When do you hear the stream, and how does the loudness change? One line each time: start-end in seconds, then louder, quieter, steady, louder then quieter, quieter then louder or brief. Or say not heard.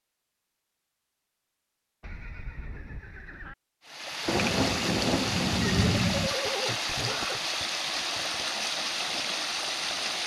3.9-10.2 steady.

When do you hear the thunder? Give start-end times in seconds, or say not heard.
4.2-6.3.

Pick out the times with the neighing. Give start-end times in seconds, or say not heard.
2.0-3.5, 5.6-7.4.